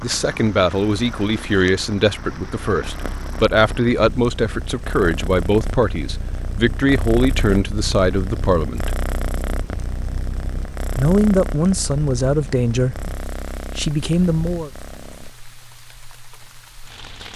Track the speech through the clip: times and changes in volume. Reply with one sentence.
The speech can be heard from 0.0 to 8.9 s, at a steady volume; briefly from 10.9 to 13.1 s; and briefly from 13.8 to 14.7 s.